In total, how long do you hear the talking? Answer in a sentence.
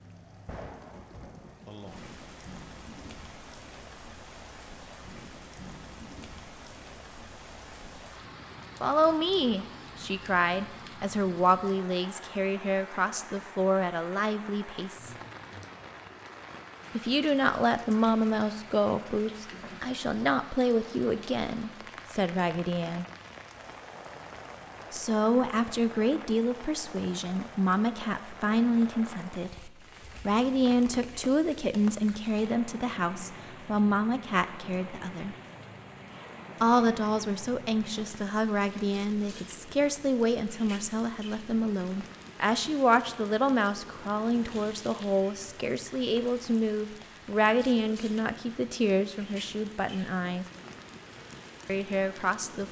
The talking can be heard for 38 seconds in total.